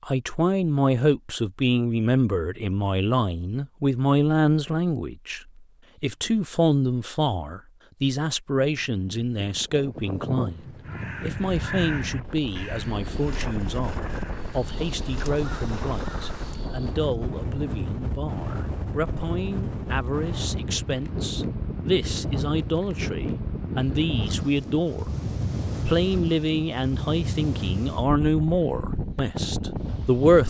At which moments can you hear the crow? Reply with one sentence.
You can hear the crow from 10.8 to 16.6 s.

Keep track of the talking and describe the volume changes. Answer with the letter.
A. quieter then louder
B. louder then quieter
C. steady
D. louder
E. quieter
A.